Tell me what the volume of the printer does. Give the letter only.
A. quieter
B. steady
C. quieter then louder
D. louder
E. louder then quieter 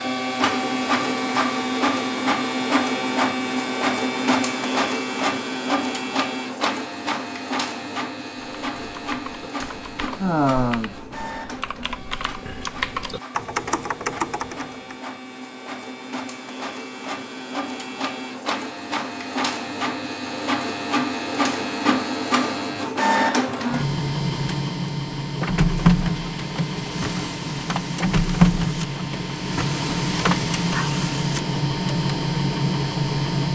C.